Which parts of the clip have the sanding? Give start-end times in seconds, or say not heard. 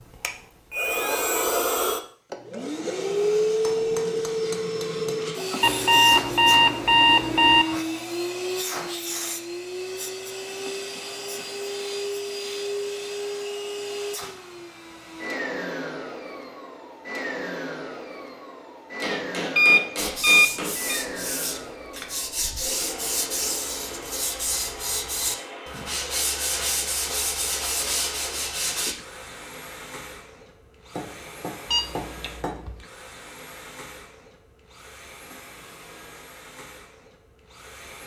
19.9-28.9.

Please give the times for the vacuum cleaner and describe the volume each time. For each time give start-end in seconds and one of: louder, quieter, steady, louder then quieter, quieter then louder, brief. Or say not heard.
0.0-38.0 quieter.